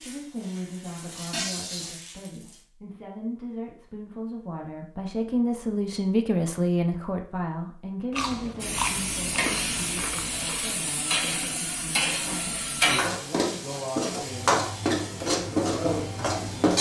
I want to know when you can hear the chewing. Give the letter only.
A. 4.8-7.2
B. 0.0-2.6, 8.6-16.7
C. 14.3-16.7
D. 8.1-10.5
D.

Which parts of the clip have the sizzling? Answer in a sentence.
The sizzling can be heard from 0.0 to 2.6 s and from 8.6 to 16.7 s.